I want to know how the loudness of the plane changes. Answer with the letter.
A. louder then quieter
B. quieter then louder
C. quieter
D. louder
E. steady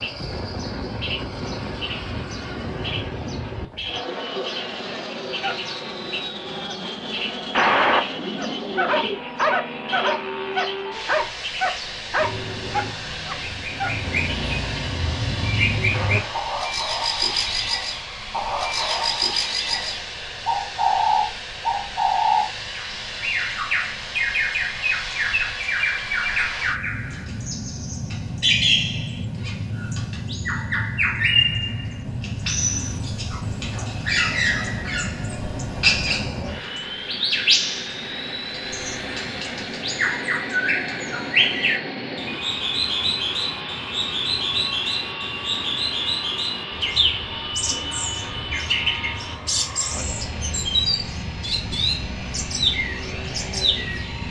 E.